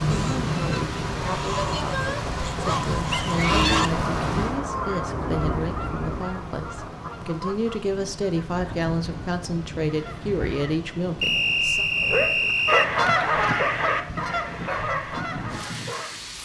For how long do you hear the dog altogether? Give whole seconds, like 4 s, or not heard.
4 s.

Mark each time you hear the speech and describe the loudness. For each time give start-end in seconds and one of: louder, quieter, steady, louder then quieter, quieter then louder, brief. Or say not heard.
0.0-11.8 louder.